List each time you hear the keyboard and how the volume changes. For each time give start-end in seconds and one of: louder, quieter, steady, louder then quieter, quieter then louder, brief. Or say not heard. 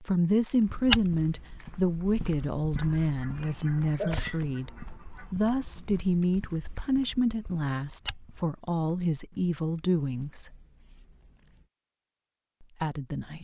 not heard.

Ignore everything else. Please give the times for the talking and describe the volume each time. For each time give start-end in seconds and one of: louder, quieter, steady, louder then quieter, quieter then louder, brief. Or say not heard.
0.0-10.5 steady
12.6-13.3 brief.